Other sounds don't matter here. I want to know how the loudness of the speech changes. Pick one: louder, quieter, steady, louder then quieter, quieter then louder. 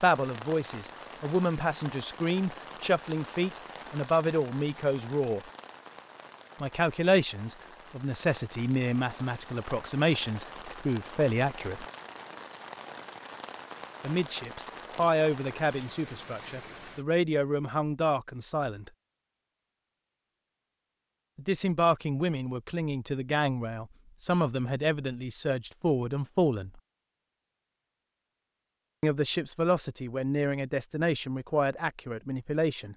steady.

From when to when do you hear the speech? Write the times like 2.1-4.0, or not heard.
0.0-5.4, 6.6-11.8, 14.0-18.9, 21.4-26.8, 29.0-32.9.